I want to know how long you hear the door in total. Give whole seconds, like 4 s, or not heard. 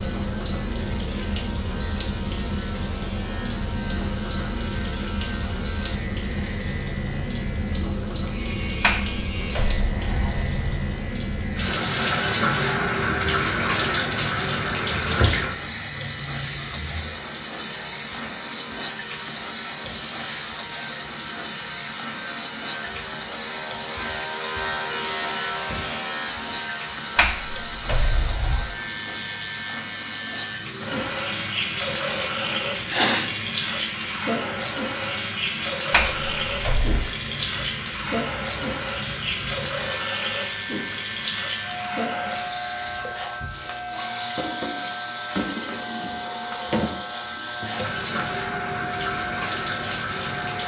5 s.